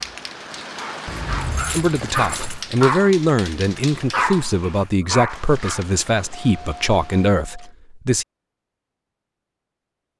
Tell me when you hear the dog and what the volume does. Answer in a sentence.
The dog can be heard from 0.0 to 5.8 s, getting louder.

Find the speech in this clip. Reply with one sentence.
You can hear the speech from 1.7 to 8.2 s.